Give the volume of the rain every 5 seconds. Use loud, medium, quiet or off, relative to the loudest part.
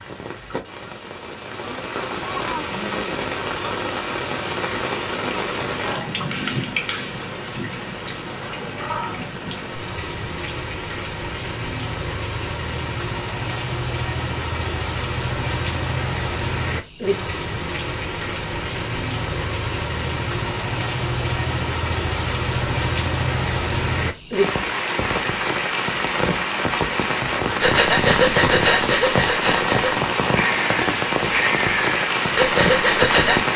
medium, medium, medium, medium, loud, loud, loud.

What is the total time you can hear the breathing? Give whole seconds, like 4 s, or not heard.
6 s.